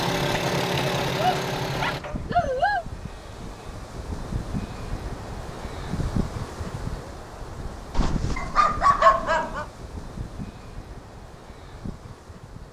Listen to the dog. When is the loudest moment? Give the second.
9 s.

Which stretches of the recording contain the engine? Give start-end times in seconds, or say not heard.
0.0-2.0.